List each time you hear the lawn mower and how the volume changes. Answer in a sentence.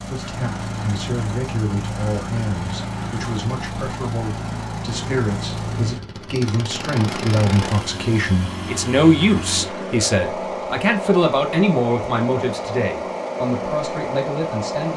You can hear the lawn mower from 0.0 to 14.9 s, at a steady volume.